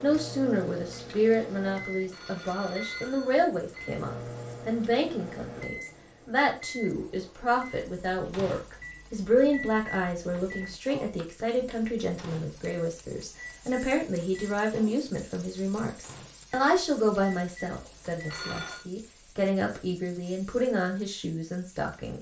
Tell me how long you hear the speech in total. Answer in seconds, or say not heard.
22 s.